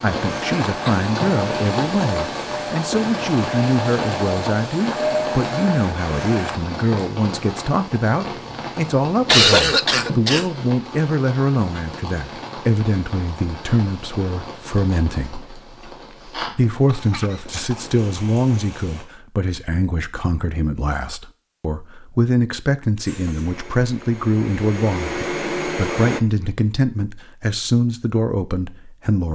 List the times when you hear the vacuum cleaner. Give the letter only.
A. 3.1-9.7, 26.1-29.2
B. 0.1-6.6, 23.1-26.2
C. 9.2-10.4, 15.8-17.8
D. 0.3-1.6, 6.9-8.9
B.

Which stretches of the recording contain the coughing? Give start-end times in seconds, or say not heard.
9.2-10.4, 15.8-17.8.